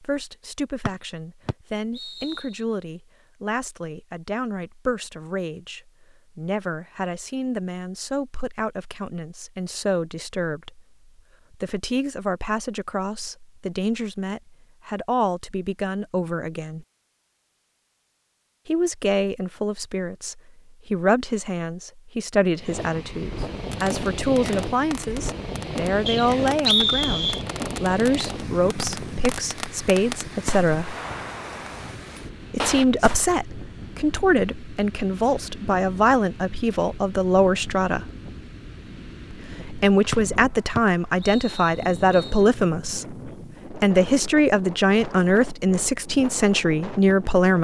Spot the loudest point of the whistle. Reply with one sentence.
The loudest moment of the whistle is at 27 seconds.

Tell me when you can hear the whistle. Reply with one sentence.
You can hear the whistle from 0.8 to 2.6 s, from 26.1 to 27.4 s and from 40.1 to 42.5 s.